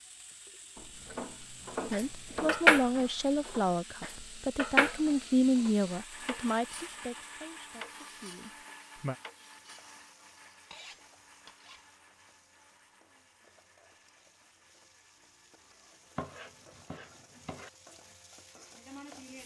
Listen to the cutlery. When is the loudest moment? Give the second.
3 s.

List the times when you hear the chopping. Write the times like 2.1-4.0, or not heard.
0.8-2.6, 16.1-17.7.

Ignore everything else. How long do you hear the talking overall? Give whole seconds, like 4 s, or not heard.
7 s.